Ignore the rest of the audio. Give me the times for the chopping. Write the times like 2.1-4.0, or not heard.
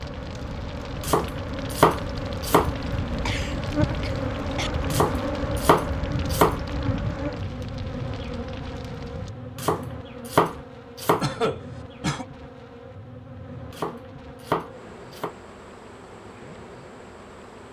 1.0-2.7, 4.9-6.6, 9.6-11.2, 13.7-15.3.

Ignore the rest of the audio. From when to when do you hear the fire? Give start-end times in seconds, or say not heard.
0.0-9.3.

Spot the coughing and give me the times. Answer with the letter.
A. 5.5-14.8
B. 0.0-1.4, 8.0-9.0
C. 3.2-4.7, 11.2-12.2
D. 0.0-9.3
C.